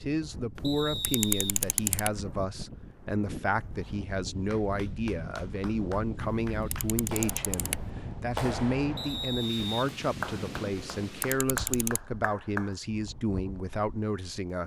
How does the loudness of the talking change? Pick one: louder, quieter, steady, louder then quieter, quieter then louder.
steady.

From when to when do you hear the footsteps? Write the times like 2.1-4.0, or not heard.
not heard.